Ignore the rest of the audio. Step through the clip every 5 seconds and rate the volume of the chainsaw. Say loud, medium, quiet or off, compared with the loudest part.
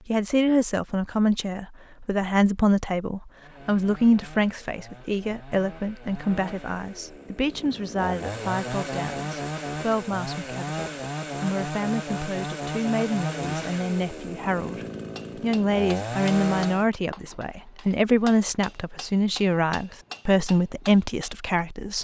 quiet, loud, loud, loud, off.